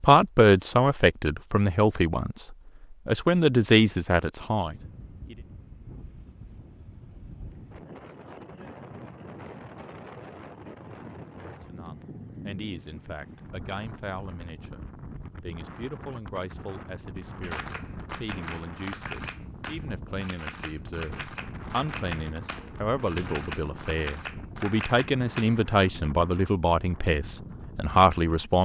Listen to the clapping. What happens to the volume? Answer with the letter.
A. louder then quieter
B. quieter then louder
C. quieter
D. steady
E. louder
D.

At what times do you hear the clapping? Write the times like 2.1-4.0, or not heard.
17.4-25.4.